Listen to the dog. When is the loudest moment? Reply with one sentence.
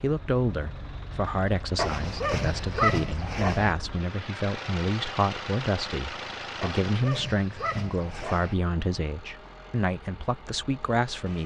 The volume of the dog peaks at 3 seconds.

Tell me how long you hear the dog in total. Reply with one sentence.
You can hear the dog for 4 seconds altogether.